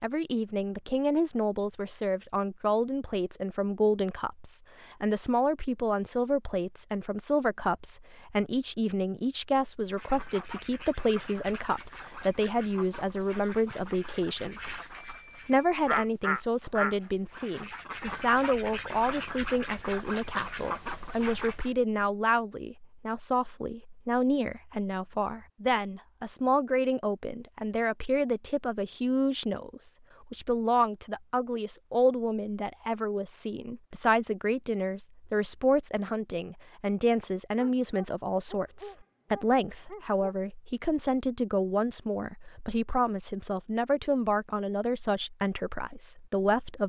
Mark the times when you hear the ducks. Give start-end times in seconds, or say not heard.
9.9-21.7.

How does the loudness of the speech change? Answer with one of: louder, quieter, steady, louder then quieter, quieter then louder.
steady.